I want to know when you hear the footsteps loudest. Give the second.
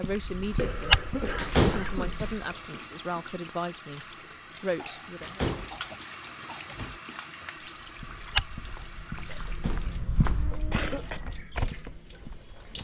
1 s.